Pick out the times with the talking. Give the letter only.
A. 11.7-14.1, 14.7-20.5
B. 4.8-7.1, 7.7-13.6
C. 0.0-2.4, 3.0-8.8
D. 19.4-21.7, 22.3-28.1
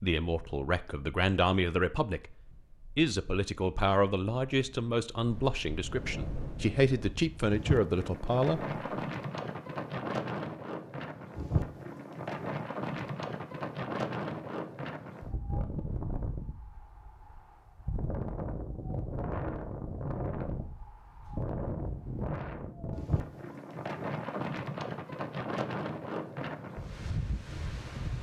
C.